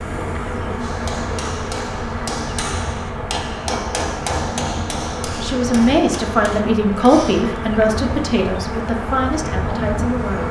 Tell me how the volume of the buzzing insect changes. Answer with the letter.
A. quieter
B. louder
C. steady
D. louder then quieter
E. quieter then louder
C.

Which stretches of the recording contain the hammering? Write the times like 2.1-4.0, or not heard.
0.8-7.6.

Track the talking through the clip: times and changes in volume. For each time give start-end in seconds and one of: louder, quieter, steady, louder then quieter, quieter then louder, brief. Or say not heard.
5.4-10.4 quieter.